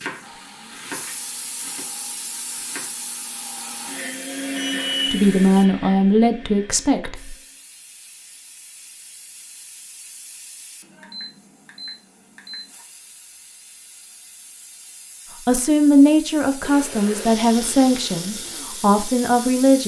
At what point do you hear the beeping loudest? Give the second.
5 s.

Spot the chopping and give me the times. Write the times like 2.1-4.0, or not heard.
0.0-2.9.